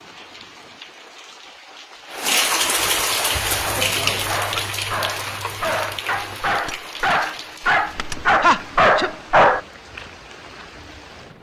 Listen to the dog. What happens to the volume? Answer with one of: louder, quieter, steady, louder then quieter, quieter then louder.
louder.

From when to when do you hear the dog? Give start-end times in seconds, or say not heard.
3.1-9.6.